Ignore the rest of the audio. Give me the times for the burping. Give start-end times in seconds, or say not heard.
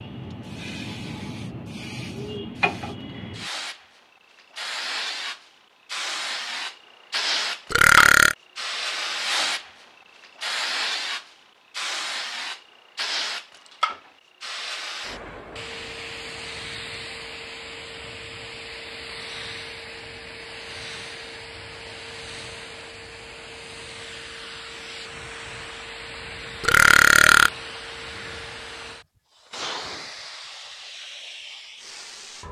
7.7-8.3, 26.6-27.5.